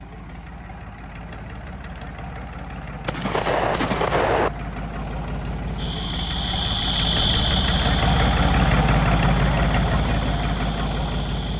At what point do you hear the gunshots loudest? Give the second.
4 s.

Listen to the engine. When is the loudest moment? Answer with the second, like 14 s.
9 s.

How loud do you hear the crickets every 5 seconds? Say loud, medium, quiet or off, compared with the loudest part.
off, loud, medium.